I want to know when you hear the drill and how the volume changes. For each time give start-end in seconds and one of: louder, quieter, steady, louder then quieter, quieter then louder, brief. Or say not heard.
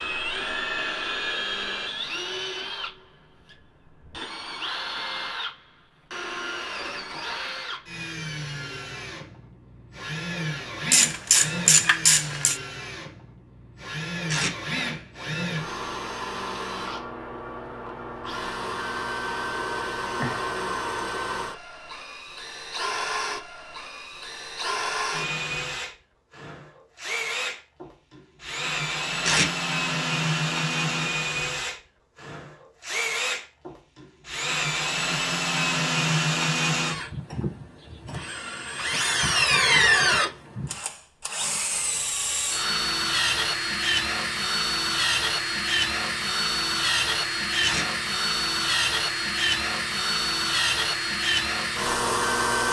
0.0-52.6 louder.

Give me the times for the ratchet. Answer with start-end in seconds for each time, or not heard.
10.9-12.6.